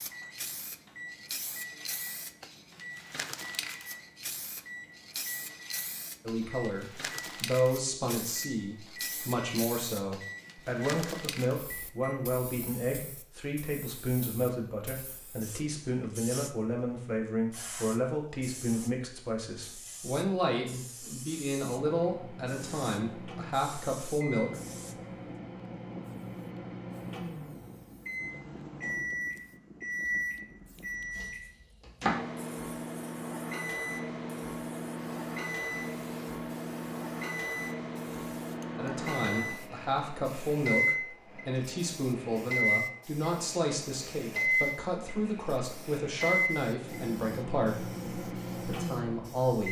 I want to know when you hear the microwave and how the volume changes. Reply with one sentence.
You can hear the microwave from 0.0 to 12.3 s, at a steady volume; and from 21.6 to 49.6 s, getting louder.